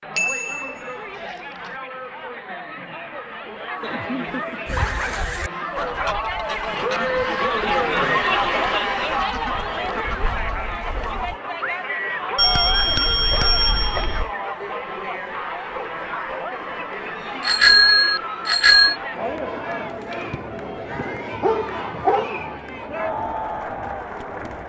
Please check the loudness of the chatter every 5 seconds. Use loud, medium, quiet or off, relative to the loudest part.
medium, loud, medium, medium, medium.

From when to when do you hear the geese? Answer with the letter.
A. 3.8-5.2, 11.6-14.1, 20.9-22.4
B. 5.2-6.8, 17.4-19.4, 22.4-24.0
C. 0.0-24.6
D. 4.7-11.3
D.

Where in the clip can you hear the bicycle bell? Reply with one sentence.
You can hear the bicycle bell from 0.1 to 1.7 s, from 12.3 to 14.3 s and from 17.4 to 18.9 s.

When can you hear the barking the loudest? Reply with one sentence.
The volume of the barking peaks at 22 seconds.